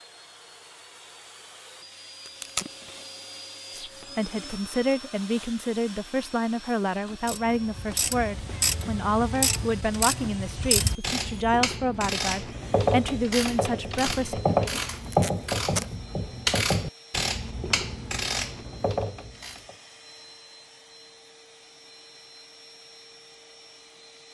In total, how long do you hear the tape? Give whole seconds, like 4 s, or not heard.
2 s.